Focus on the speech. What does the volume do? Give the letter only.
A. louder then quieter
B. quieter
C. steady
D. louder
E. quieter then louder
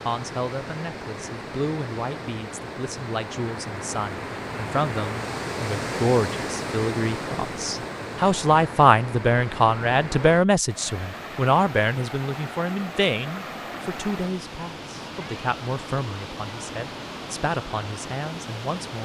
A.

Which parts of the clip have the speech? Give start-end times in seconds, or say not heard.
0.1-19.0.